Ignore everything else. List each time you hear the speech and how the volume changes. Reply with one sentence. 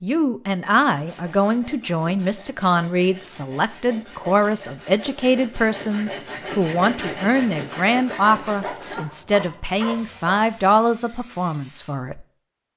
The speech can be heard from 0.0 to 12.7 s, at a steady volume.